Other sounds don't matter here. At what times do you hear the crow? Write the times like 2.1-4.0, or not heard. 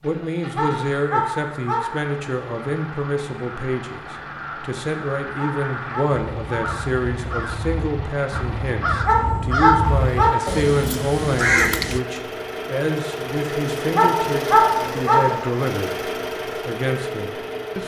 0.8-12.0.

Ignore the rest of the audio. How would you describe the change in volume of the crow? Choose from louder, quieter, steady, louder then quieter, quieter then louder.
louder.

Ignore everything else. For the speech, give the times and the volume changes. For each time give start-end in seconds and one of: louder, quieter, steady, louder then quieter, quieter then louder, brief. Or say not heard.
0.0-17.8 steady.